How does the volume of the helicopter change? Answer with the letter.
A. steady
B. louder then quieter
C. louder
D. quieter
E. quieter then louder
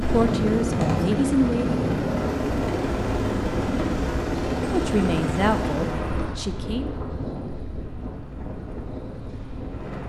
D.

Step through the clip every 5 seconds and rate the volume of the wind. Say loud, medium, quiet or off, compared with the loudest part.
loud, medium.